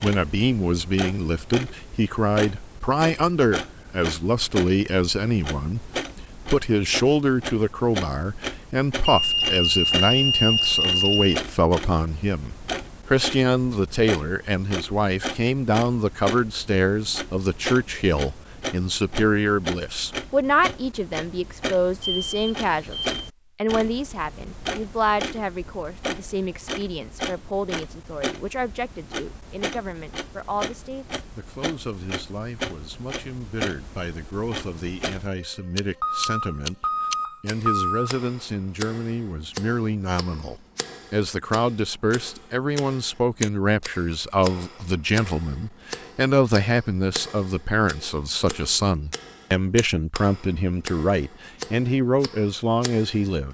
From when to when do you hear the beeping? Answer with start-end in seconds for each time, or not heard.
9.1-11.4, 22.1-23.2, 36.0-38.1.